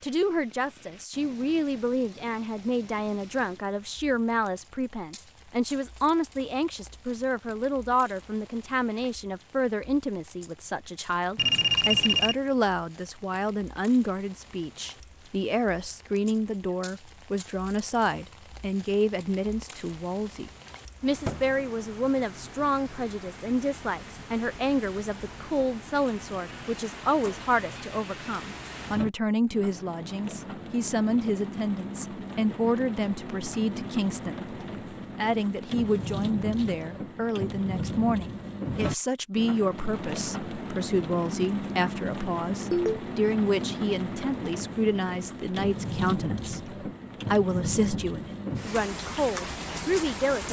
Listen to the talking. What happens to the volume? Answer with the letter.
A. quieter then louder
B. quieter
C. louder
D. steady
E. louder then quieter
D.